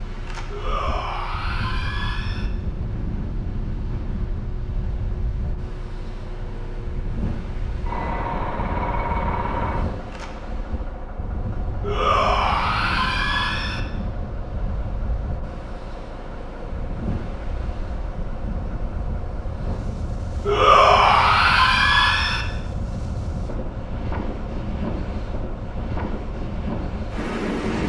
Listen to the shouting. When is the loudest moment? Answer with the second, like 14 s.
21 s.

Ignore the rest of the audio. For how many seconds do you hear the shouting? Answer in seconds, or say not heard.
6 s.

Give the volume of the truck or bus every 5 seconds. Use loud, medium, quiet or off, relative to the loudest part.
medium, loud, medium, medium, medium, medium.